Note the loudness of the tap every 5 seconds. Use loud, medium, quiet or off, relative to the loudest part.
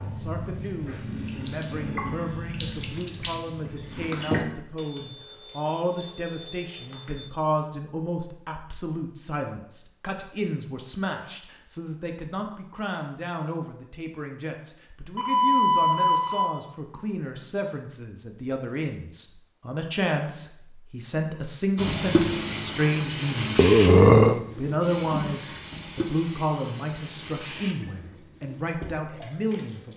loud, off, off, off, loud, medium.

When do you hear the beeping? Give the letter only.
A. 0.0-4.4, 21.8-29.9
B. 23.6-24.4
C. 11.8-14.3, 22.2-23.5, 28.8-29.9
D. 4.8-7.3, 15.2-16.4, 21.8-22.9
D.